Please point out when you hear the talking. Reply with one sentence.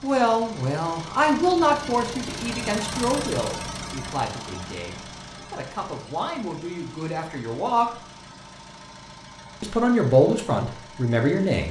You can hear the talking from 0.0 to 7.9 s and from 9.6 to 11.6 s.